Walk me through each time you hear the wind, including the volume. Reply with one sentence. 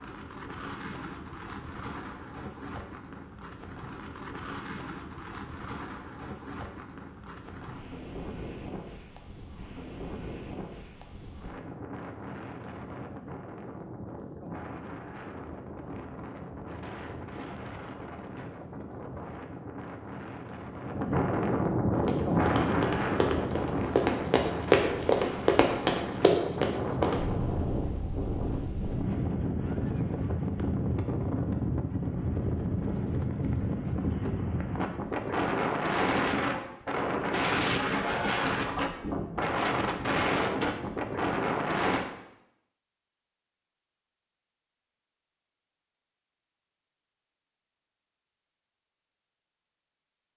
You can hear the wind from 0.0 to 42.0 s, getting louder.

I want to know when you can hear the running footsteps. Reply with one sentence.
You can hear the running footsteps from 22.1 to 27.2 s.